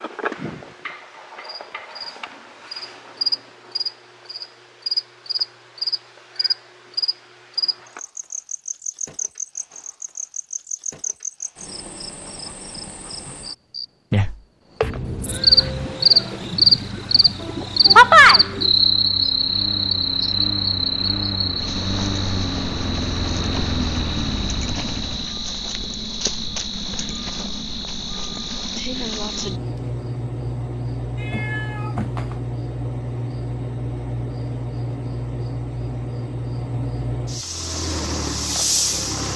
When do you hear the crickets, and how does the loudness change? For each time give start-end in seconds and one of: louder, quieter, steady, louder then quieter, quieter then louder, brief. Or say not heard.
0.0-39.3 louder then quieter.